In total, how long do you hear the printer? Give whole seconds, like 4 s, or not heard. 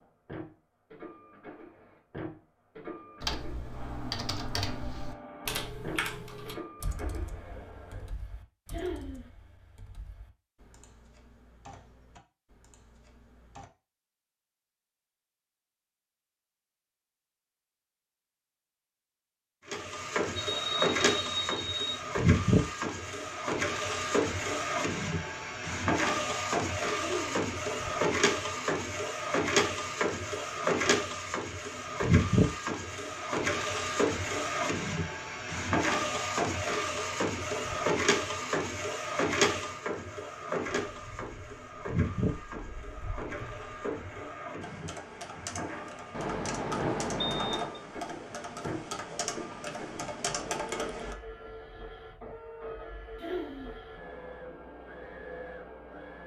45 s.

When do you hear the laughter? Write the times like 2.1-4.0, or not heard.
8.7-9.2, 26.9-27.4, 53.1-53.8.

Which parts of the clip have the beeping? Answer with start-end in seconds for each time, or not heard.
20.4-22.0, 46.1-47.8.